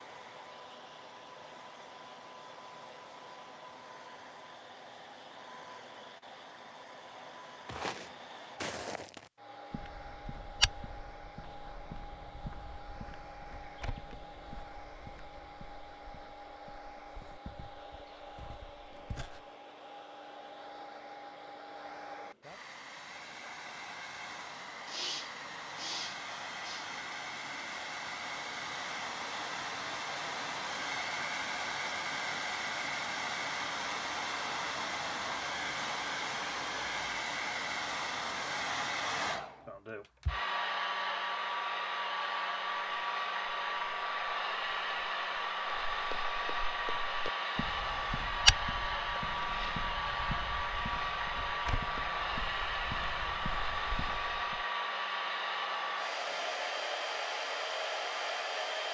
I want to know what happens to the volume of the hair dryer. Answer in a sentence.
The loudness of the hair dryer goes up.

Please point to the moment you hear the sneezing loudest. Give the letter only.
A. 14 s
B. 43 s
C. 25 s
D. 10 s
C.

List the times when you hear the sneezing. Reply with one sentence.
The sneezing can be heard from 24.9 to 26.9 s.